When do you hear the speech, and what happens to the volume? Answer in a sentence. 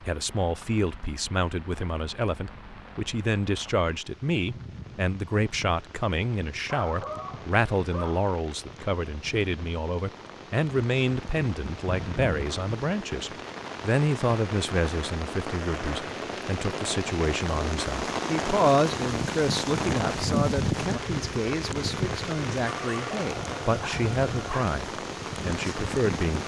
You can hear the speech from 0.1 to 26.4 s, at a steady volume.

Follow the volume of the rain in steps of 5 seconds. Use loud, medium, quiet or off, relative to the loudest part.
quiet, quiet, medium, loud, loud, loud.